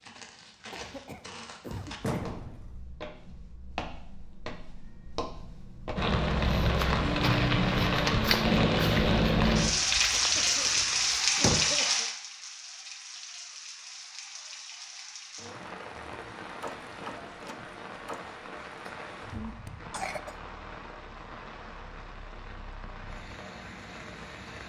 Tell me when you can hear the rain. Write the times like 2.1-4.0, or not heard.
6.0-24.6.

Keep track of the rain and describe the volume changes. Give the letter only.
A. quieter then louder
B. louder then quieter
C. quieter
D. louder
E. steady
C.